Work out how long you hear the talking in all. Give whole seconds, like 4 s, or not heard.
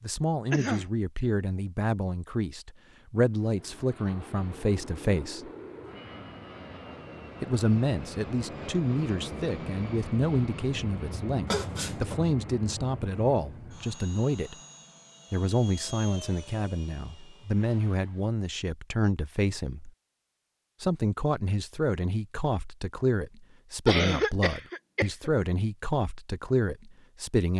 24 s.